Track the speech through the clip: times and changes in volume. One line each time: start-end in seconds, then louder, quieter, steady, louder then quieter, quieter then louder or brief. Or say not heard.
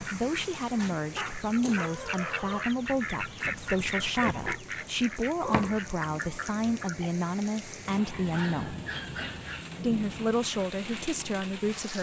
0.0-8.8 steady
9.8-11.9 brief.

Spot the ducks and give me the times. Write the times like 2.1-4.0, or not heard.
0.0-7.1.